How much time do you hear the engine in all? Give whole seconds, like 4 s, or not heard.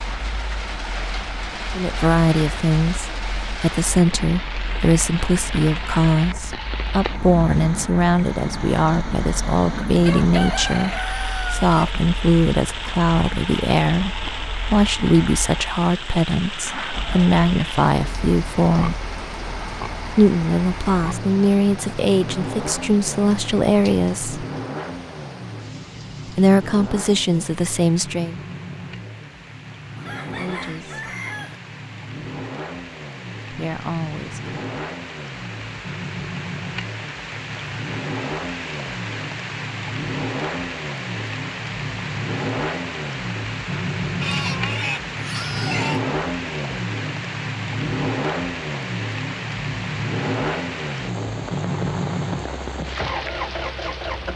54 s.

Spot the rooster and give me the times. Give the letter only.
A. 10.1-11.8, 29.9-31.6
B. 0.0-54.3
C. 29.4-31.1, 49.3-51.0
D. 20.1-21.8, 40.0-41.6
A.